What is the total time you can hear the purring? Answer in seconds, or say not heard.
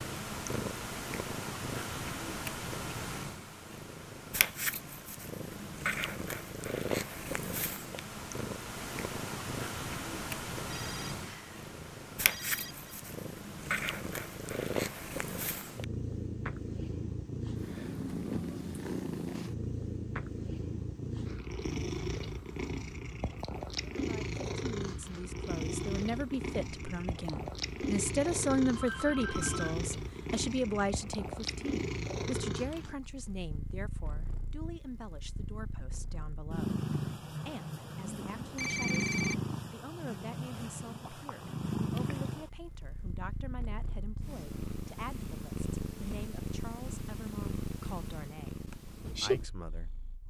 50 s.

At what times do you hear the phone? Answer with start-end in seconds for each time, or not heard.
10.6-12.9, 28.8-29.8, 38.0-39.4.